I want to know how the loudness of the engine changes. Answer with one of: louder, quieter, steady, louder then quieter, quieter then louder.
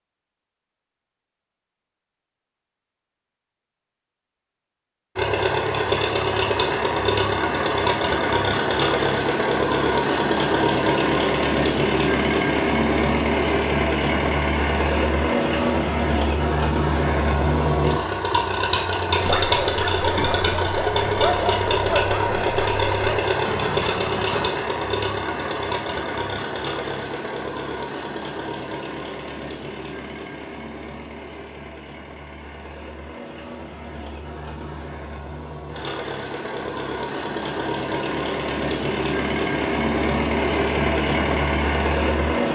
quieter then louder.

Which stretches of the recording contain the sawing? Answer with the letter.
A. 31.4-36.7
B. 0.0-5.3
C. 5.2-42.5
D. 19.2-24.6
D.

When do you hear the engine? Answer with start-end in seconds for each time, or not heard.
5.2-42.5.